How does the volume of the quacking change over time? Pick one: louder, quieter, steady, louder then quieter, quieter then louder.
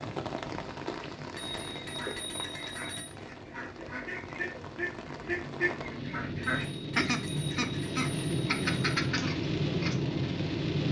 louder.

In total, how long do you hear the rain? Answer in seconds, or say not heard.
11 s.